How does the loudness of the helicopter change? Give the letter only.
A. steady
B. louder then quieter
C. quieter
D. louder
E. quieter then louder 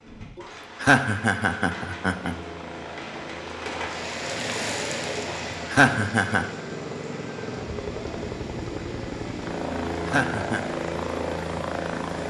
D.